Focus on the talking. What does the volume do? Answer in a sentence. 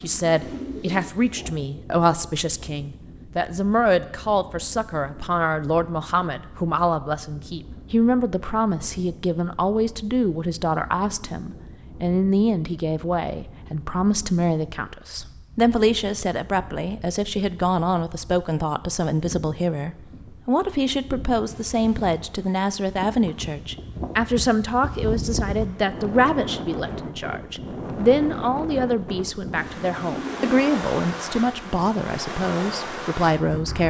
The volume of the talking stays about the same.